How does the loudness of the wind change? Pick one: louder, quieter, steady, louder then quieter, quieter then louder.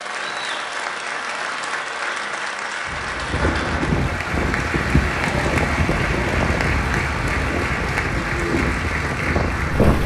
steady.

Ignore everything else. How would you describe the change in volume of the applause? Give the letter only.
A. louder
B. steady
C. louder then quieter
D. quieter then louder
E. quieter
B.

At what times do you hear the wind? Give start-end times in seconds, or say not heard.
2.9-10.0.